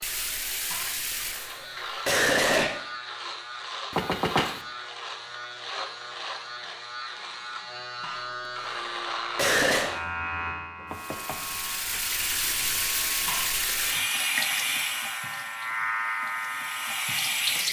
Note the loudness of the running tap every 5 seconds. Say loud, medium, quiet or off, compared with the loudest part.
medium, off, loud, loud.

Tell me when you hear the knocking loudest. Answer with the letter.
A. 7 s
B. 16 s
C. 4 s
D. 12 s
C.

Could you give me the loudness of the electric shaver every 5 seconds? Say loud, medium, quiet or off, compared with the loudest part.
medium, loud, medium, loud.